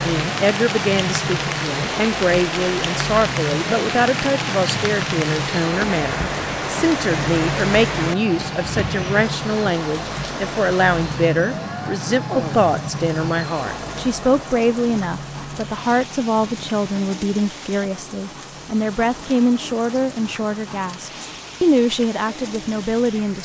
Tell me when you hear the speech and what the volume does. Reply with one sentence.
You can hear the speech from 0.0 to 23.3 s, at a steady volume.